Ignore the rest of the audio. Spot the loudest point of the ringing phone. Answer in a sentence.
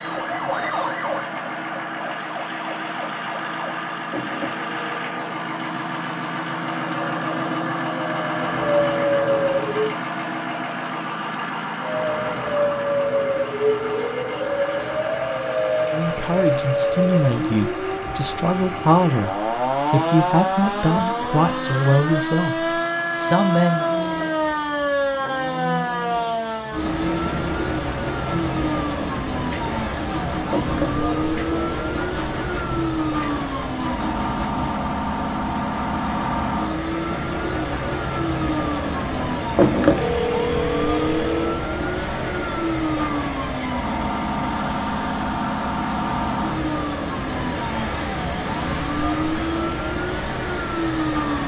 The loudest moment of the ringing phone is at 40 seconds.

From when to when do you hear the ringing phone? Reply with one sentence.
The ringing phone can be heard from 4.1 to 5.2 s, from 30.5 to 32.0 s and from 39.5 to 41.6 s.